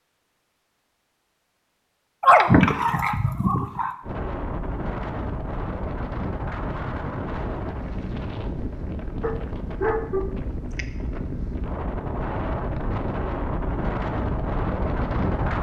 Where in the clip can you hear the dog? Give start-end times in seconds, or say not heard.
2.2-4.0, 9.2-10.8.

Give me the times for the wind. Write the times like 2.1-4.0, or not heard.
4.0-15.5.